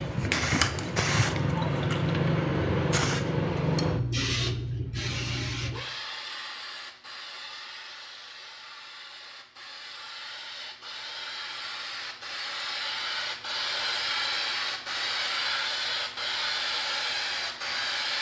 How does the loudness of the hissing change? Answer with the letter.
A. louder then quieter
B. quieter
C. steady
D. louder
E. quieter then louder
E.